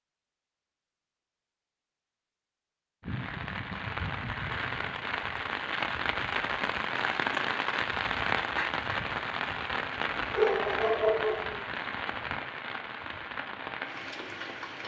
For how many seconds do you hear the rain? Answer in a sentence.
The rain can be heard for 12 seconds in total.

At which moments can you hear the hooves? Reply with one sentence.
You can't hear the hooves here.